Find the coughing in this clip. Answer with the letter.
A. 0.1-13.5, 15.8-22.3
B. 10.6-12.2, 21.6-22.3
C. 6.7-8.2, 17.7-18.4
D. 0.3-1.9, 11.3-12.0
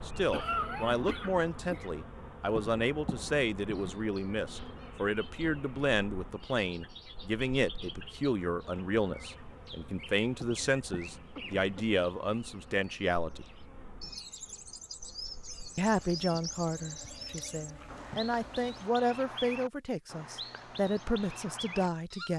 D.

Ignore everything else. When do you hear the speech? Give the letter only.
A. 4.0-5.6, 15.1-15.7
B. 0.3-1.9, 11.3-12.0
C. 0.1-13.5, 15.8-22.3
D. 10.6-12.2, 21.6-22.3
C.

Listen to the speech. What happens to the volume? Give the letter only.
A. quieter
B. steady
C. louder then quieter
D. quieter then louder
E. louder
B.